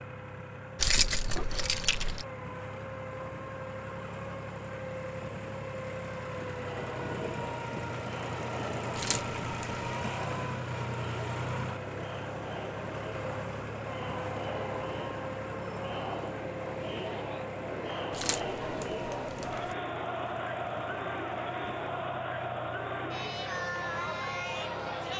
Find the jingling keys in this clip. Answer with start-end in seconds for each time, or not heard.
0.8-2.2, 8.9-9.7, 18.1-19.8.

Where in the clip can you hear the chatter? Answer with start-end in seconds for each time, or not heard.
6.5-25.1.